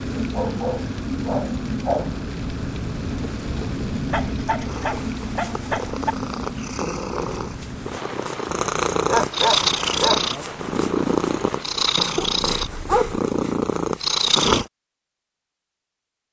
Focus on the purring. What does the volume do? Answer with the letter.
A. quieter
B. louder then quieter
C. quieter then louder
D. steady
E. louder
E.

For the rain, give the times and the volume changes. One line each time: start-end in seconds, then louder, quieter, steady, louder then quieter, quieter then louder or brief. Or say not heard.
0.0-11.7 quieter.